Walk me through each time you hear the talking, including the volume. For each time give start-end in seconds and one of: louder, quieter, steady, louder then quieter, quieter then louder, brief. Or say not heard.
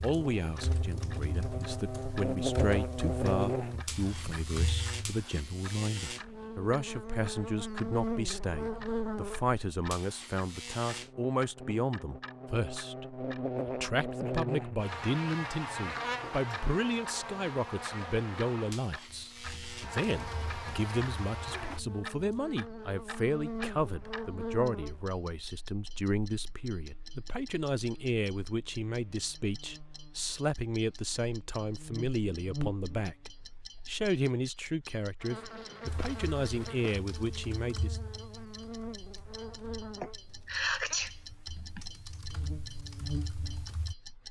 0.0-38.0 steady.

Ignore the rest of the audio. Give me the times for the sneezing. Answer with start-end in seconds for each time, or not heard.
40.0-41.8.